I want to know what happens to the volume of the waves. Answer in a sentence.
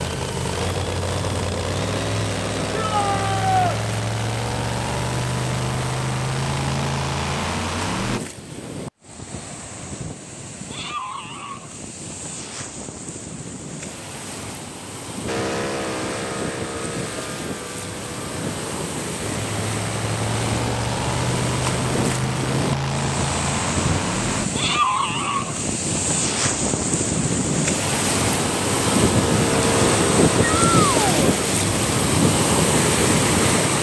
The volume of the waves goes up.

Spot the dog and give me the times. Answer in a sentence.
The dog can't be heard in this clip.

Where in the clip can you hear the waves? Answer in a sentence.
The waves can be heard from 0.0 to 33.7 s.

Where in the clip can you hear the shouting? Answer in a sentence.
The shouting can be heard from 2.7 to 3.8 s and from 30.4 to 31.1 s.